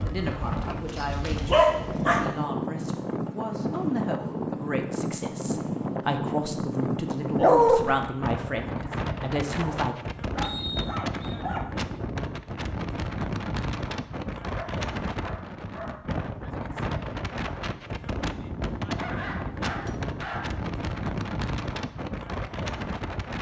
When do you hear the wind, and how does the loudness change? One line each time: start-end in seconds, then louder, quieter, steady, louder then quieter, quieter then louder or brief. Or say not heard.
0.0-23.3 steady.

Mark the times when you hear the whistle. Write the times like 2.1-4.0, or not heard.
10.4-11.4.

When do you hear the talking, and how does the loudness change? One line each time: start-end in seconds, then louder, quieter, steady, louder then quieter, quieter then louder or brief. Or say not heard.
0.0-9.9 louder.